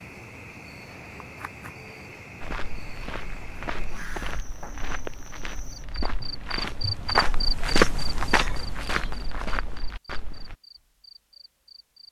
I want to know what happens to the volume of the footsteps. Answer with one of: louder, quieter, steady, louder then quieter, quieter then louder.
louder then quieter.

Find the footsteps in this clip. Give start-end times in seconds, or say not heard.
2.4-10.6.